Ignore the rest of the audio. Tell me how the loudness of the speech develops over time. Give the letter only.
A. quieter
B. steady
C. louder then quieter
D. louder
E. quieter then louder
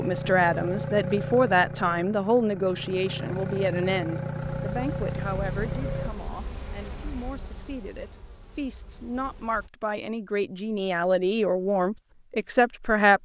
E.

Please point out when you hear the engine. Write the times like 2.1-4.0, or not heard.
0.0-6.1.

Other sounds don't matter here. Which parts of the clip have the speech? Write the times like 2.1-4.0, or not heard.
0.0-13.1.